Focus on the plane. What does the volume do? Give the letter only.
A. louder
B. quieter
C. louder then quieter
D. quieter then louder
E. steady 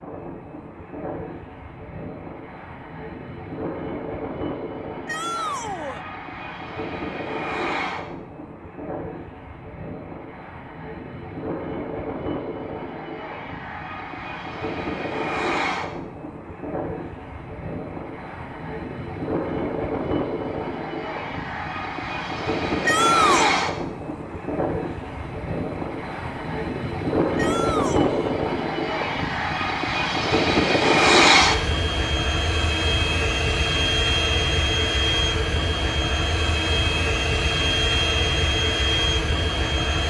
A.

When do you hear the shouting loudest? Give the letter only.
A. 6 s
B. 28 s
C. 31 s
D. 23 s
D.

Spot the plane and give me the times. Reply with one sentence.
The plane can be heard from 0.0 to 40.0 s.